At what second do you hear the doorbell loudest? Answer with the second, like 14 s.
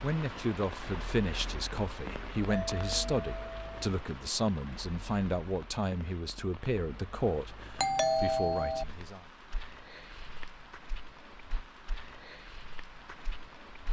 8 s.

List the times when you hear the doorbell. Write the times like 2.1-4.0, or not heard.
2.0-3.9, 7.8-8.8.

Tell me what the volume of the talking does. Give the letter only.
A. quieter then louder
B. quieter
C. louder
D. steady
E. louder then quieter
D.